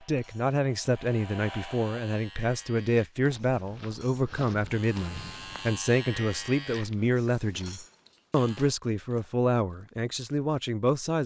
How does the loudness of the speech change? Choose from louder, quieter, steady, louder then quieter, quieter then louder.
steady.